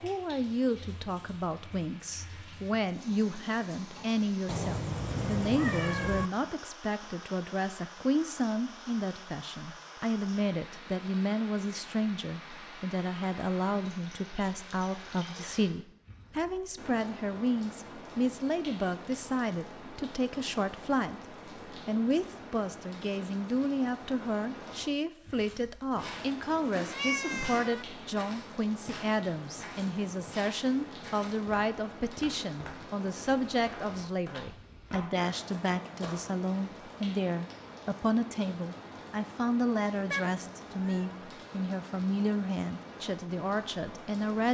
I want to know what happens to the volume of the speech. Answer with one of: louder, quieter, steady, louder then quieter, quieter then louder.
steady.